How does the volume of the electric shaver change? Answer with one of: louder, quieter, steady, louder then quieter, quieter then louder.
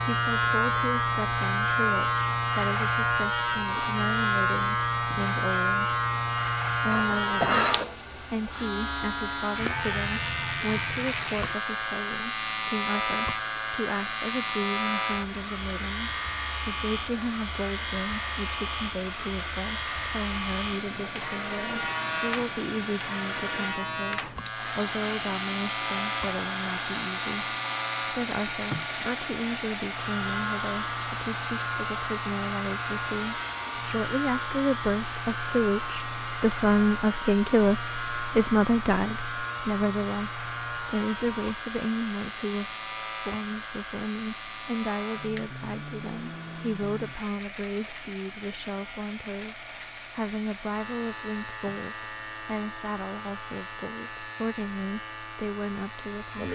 quieter.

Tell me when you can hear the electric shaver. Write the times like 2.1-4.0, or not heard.
0.0-56.5.